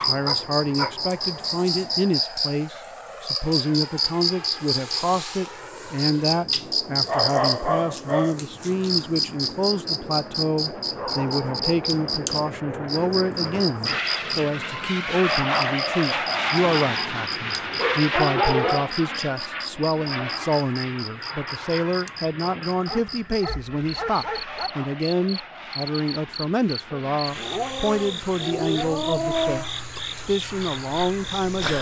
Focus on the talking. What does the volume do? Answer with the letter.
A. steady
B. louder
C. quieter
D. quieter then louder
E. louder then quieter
A.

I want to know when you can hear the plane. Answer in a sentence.
You can hear the plane from 0.0 to 31.5 s.